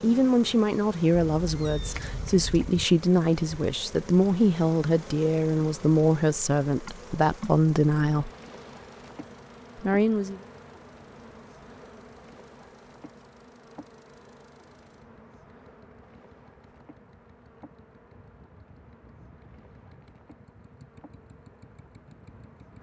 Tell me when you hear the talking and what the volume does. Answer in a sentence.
You can hear the talking from 0.0 to 8.3 s, at a steady volume; and briefly from 9.8 to 10.4 s.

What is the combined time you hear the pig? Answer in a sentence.
The pig can't be heard in this clip.